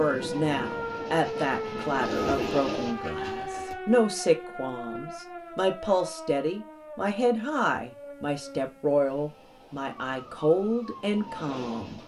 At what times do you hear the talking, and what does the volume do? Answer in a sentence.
The talking can be heard from 0.0 to 12.0 s, at a steady volume.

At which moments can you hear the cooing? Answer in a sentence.
You can hear the cooing from 1.8 to 3.8 s.